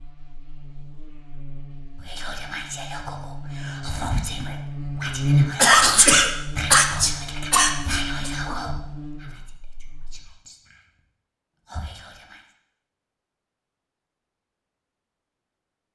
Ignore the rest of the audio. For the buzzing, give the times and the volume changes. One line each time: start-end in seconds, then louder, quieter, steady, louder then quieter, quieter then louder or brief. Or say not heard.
0.0-10.2 louder then quieter.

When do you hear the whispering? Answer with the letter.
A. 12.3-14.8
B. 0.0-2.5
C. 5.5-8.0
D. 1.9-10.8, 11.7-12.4
D.